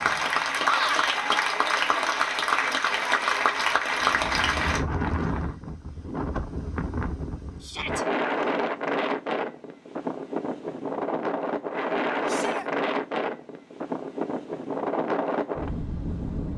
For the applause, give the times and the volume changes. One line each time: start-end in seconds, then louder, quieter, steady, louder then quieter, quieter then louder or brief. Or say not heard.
0.0-4.8 steady.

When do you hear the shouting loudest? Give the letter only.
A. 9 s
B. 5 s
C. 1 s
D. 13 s
C.